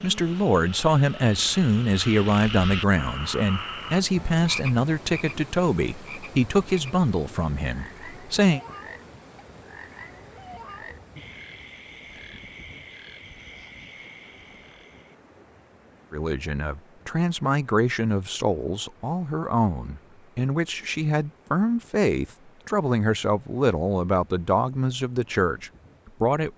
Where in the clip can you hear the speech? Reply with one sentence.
The speech can be heard from 0.0 to 8.6 s and from 16.1 to 26.5 s.